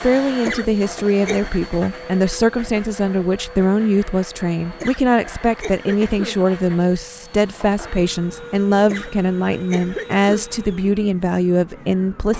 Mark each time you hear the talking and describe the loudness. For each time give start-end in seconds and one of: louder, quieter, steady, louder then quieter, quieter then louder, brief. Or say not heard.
0.0-12.3 steady.